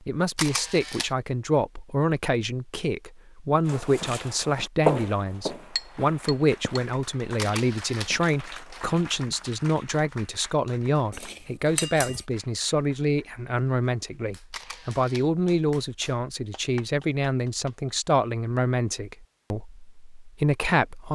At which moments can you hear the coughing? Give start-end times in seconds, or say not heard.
not heard.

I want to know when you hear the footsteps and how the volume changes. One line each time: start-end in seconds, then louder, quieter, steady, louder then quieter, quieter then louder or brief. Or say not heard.
3.6-9.2 quieter.